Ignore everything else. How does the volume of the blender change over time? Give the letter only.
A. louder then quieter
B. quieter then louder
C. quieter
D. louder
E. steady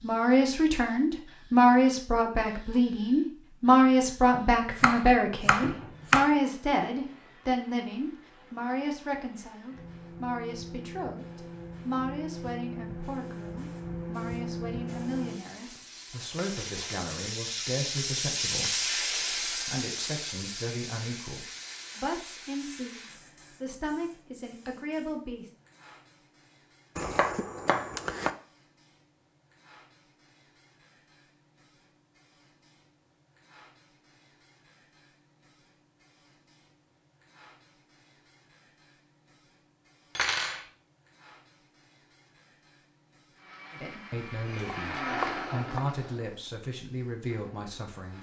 A.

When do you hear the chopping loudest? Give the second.
6 s.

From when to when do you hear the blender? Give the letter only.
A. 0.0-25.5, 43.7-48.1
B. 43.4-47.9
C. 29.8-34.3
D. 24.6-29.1
B.